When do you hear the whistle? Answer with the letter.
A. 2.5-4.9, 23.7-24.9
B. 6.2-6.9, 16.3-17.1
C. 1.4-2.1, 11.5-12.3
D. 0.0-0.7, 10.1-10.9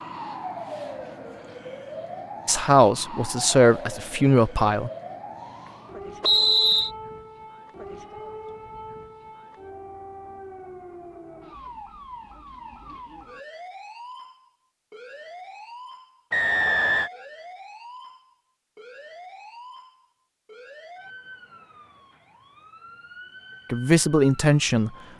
B.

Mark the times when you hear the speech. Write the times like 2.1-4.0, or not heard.
2.5-4.9, 23.7-24.9.